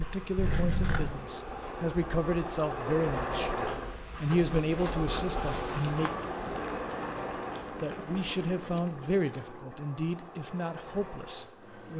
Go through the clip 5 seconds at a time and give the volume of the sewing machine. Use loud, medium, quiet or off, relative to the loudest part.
loud, loud, medium.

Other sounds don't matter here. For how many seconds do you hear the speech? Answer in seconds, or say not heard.
10 s.